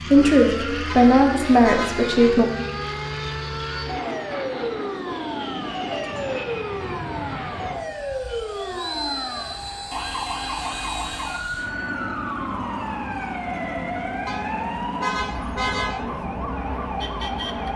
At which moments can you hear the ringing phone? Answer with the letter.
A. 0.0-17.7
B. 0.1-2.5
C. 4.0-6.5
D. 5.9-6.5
D.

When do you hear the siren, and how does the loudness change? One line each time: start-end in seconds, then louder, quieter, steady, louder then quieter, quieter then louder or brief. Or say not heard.
0.0-17.7 steady.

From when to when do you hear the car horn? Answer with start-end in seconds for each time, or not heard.
0.9-2.4, 14.2-16.1.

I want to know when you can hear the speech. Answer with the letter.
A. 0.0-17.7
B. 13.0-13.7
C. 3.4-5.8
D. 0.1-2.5
D.